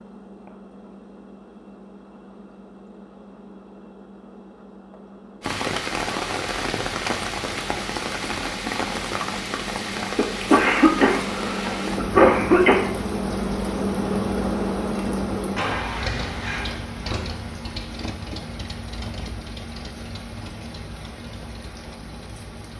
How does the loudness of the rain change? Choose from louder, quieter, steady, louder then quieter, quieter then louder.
quieter.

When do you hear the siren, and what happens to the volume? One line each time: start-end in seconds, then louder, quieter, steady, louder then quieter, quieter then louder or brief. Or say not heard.
not heard.